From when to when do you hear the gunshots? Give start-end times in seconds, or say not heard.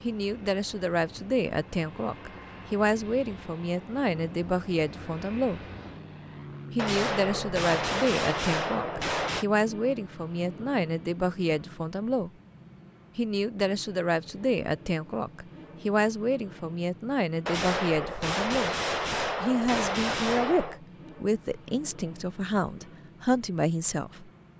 6.8-9.4, 17.4-20.8.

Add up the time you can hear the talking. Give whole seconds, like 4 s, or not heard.
22 s.